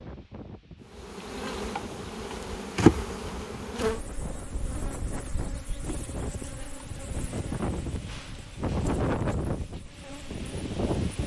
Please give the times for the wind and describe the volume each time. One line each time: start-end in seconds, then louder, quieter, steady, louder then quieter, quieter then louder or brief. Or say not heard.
0.0-11.2 louder.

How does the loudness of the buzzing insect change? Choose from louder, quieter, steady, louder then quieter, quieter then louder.
quieter.